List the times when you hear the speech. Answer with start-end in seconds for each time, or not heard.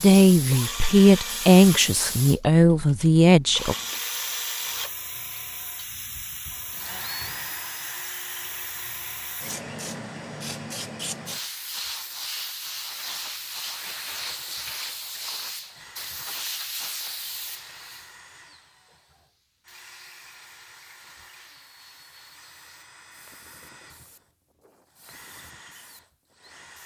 0.0-3.8.